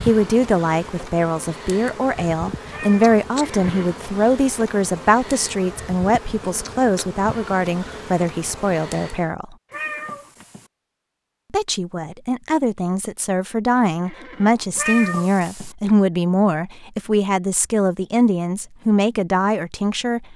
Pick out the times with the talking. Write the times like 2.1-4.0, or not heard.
0.0-9.6, 11.5-20.3.